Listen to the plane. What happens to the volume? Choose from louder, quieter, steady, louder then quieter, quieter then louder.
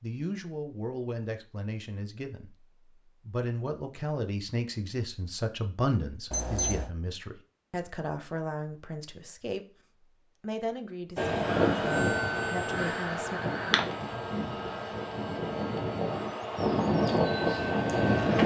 quieter then louder.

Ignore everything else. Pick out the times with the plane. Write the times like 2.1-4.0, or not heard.
11.2-18.4.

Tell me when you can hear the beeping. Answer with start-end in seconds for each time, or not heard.
6.3-6.9.